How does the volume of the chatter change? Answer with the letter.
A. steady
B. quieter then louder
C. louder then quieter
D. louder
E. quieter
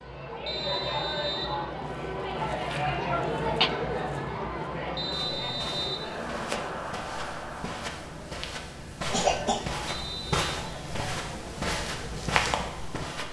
E.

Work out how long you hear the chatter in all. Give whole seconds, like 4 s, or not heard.
13 s.